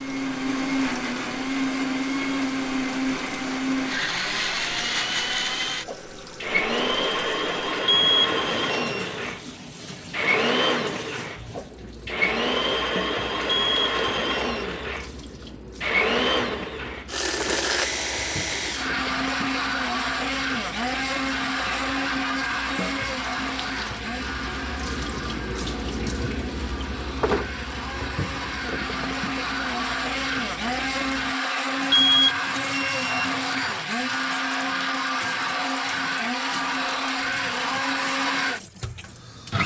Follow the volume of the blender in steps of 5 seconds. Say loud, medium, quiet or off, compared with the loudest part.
loud, loud, loud, loud, loud, medium, loud, loud.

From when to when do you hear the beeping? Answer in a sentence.
The beeping can be heard from 7.8 to 9.1 s, from 13.4 to 14.7 s and from 31.9 to 33.8 s.